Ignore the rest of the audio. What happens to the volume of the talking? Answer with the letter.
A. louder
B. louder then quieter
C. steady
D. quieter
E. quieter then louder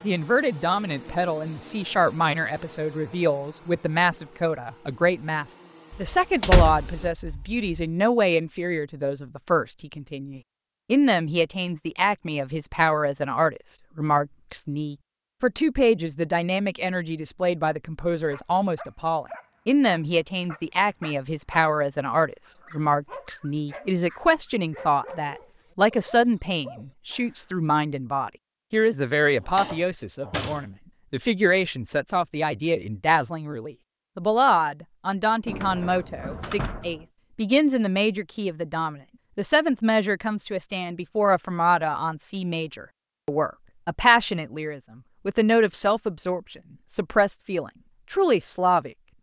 C.